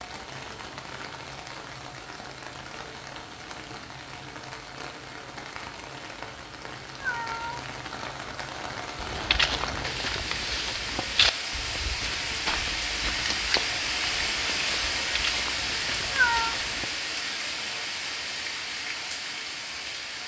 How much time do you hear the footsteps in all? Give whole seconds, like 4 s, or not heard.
8 s.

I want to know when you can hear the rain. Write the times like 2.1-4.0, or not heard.
0.0-20.2.